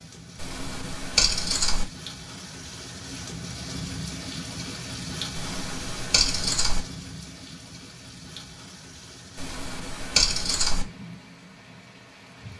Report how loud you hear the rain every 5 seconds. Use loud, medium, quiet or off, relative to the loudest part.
loud, loud, medium.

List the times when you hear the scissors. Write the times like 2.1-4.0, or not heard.
0.3-1.9, 5.3-6.8, 9.3-10.8.